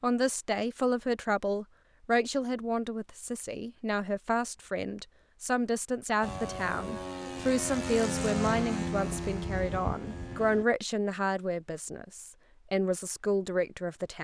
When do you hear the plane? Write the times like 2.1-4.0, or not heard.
6.2-10.7.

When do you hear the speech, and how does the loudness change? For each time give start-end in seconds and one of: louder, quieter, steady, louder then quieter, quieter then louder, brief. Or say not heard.
0.0-14.1 steady.